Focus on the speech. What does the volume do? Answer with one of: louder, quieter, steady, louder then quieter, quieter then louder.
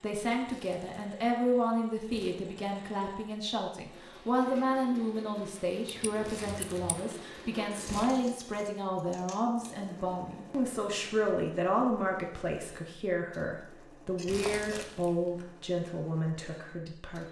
steady.